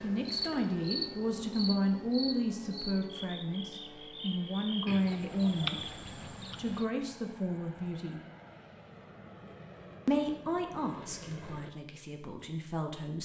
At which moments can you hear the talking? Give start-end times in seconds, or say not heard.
0.0-6.0, 6.5-8.2, 10.1-13.1.